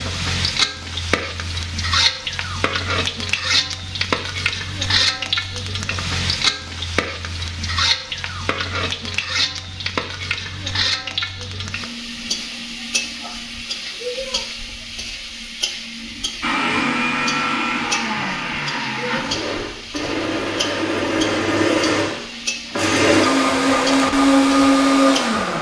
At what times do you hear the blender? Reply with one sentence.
You can hear the blender from 16.4 to 25.5 s.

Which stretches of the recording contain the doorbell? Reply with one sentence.
The doorbell can't be heard in this clip.